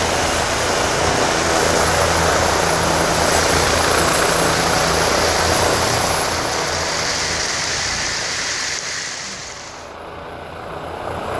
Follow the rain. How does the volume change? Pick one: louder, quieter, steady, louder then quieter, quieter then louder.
steady.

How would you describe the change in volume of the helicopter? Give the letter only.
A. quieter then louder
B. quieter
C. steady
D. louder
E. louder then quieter
B.